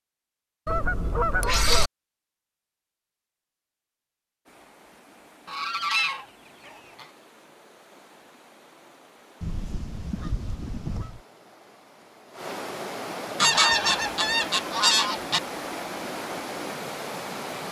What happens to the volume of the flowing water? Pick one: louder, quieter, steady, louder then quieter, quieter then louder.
louder.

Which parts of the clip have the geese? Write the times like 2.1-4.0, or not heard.
0.7-1.9, 5.5-7.0, 9.4-11.2, 13.4-15.4.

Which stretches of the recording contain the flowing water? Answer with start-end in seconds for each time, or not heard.
4.5-17.6.